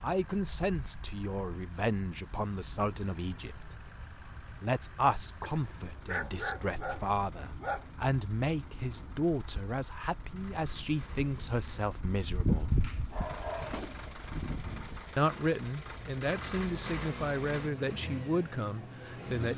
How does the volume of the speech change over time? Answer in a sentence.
The loudness of the speech stays about the same.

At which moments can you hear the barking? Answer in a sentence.
You can hear the barking from 5.4 to 7.8 s and from 12.7 to 13.8 s.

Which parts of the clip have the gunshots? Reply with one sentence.
The gunshots can be heard from 13.7 to 14.2 s.